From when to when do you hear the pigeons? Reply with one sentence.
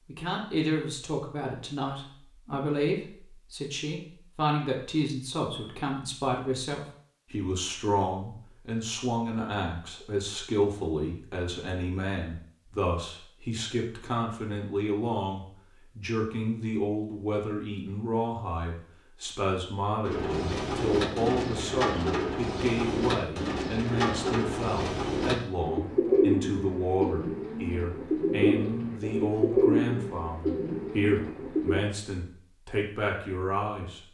The pigeons can be heard from 20.1 to 31.9 s.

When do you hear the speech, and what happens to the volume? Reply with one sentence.
You can hear the speech from 0.1 to 34.0 s, at a steady volume.